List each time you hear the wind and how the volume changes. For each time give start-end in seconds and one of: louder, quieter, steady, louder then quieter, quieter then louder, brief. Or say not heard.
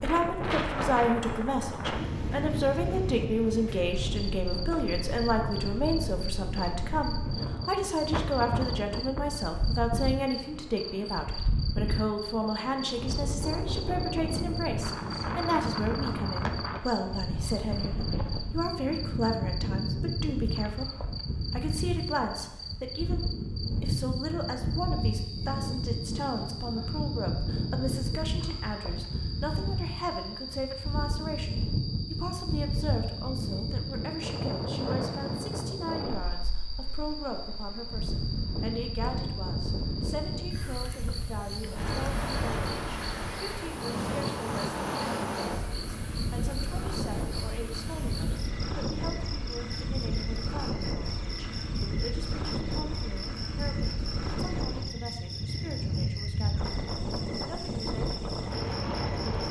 0.0-59.4 steady.